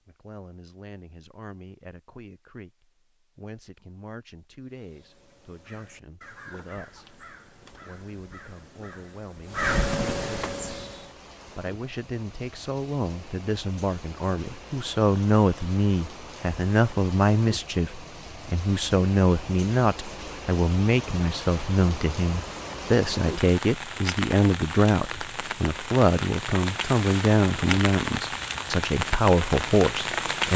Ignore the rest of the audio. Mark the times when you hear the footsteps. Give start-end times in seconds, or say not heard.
not heard.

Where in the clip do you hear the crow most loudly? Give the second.
10 s.